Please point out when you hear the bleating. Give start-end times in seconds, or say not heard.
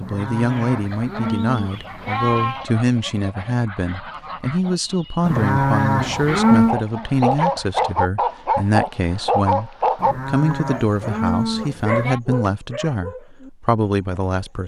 0.0-2.6, 5.2-6.8, 9.9-12.2.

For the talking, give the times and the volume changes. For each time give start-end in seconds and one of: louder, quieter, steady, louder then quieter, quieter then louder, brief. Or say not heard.
0.0-14.6 steady.